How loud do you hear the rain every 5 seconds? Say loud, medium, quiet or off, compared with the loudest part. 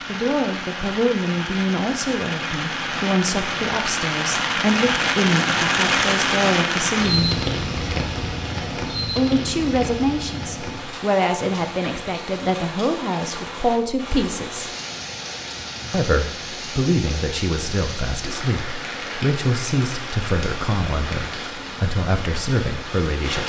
loud, loud, medium, medium, medium.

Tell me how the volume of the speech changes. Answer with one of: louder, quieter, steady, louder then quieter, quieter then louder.
steady.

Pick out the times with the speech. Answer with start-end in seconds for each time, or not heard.
0.1-7.5, 9.1-14.7, 15.9-23.4.